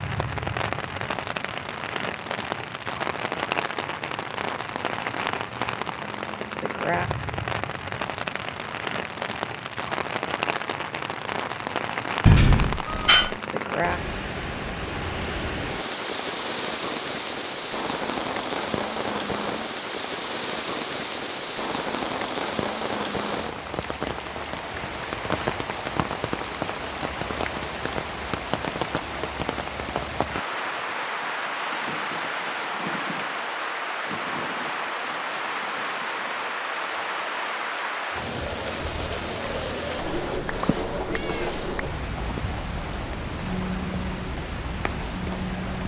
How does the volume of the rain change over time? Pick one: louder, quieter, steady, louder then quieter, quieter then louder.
steady.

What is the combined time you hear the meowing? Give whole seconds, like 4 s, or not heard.
3 s.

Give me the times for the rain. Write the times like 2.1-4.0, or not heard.
0.0-45.8.